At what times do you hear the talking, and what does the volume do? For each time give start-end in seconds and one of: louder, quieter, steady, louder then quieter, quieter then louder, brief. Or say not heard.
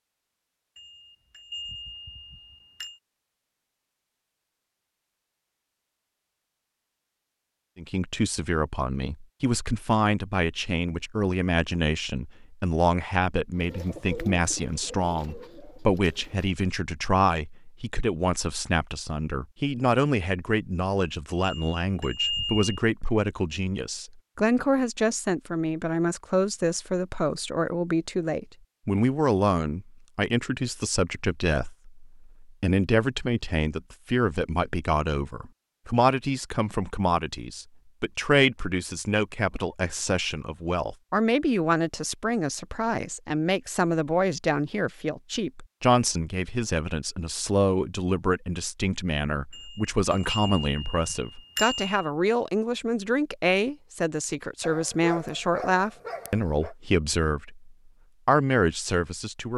7.8-59.5 steady.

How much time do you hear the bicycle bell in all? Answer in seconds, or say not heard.
6 s.